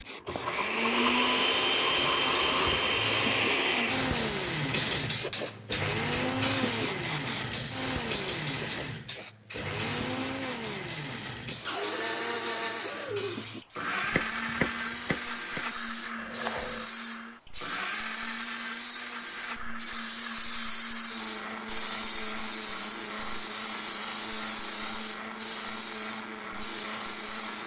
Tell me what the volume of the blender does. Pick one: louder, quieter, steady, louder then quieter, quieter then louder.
quieter.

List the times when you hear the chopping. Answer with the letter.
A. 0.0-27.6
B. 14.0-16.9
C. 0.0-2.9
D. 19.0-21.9
B.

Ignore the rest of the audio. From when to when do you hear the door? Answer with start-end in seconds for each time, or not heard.
not heard.